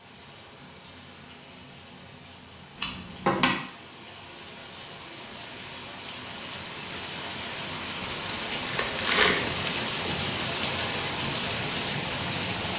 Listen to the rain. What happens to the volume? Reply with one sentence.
The loudness of the rain goes up.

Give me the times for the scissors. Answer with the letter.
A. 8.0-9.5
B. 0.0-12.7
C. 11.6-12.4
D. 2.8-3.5
D.